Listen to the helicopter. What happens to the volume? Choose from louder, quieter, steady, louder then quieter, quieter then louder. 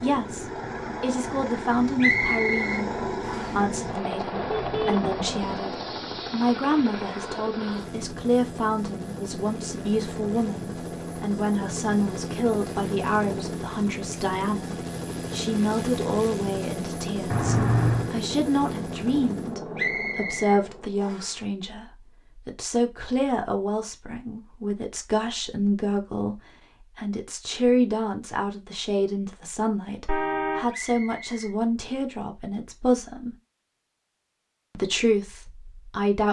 steady.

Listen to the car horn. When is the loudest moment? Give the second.
18 s.